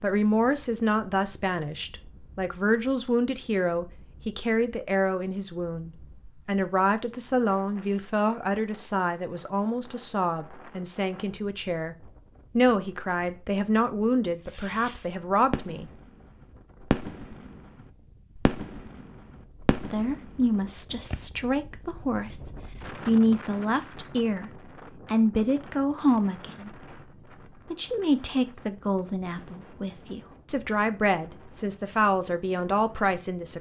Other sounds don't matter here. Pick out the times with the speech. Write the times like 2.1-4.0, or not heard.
0.0-11.9, 12.6-15.9, 19.9-26.9, 27.6-33.5.